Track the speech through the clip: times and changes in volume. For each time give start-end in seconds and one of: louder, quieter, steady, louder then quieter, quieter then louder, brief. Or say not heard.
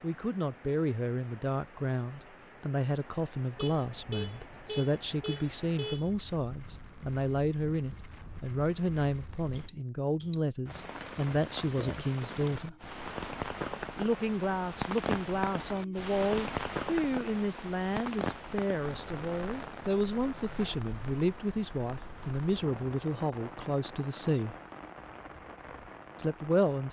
0.0-12.8 steady
13.9-24.6 steady
26.1-26.8 brief.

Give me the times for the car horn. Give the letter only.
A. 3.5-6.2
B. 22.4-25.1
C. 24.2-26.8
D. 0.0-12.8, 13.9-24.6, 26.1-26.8
A.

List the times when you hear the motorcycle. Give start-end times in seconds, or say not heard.
not heard.